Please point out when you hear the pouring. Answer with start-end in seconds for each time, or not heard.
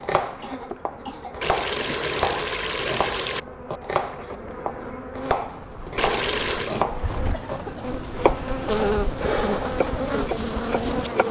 1.4-3.4, 6.0-6.8.